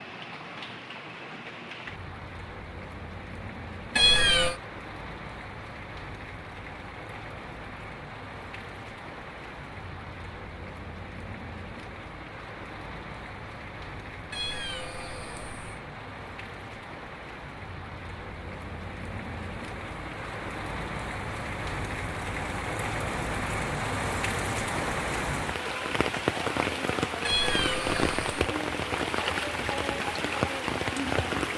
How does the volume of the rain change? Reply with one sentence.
The loudness of the rain goes up.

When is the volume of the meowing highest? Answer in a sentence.
The volume of the meowing peaks at 4 seconds.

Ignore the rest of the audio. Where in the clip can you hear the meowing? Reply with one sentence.
The meowing can be heard from 4.0 to 4.5 s, from 14.3 to 15.8 s and from 27.2 to 28.4 s.